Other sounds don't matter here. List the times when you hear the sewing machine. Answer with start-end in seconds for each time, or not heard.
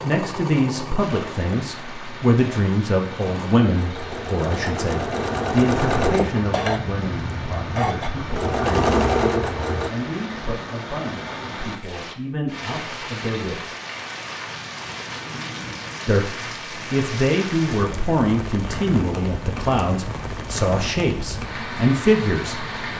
0.0-9.9.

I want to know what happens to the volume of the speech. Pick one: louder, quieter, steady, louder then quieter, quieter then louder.
quieter then louder.